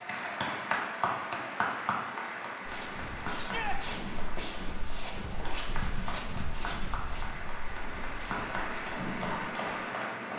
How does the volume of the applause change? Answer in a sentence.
The volume of the applause goes down, then up.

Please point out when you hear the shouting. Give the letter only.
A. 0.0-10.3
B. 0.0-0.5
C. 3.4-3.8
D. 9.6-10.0
C.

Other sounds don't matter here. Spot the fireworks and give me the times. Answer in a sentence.
You can't hear the fireworks here.